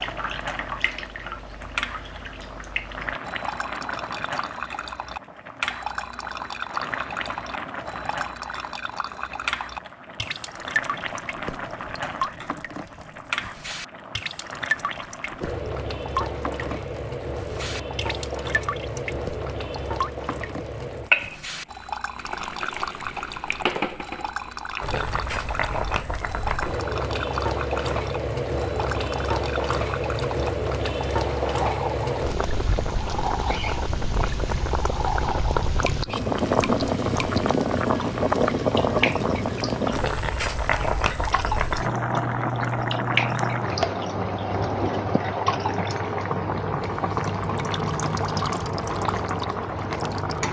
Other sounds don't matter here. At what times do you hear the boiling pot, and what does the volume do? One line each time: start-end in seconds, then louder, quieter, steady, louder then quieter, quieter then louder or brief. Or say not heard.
0.0-50.4 louder.